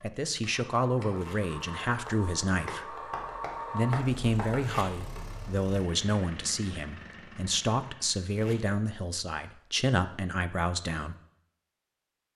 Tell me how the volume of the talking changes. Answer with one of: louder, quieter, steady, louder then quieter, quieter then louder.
steady.